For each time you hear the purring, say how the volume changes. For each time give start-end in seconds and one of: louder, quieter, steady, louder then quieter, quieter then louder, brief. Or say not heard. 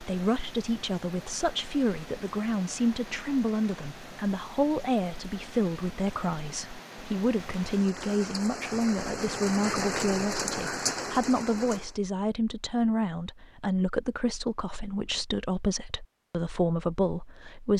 not heard.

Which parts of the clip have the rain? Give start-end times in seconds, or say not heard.
0.0-11.9.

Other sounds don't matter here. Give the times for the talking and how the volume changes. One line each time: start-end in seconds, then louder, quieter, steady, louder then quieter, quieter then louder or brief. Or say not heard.
0.0-17.7 steady.